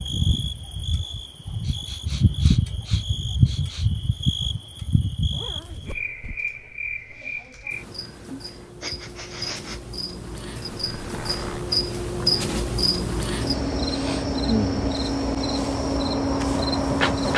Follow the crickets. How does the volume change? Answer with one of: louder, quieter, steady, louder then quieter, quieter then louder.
quieter then louder.